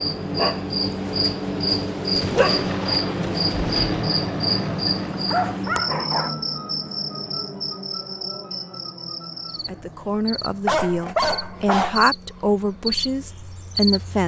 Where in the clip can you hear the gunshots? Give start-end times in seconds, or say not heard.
2.1-4.0.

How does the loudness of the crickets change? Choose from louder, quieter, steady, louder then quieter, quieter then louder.
quieter then louder.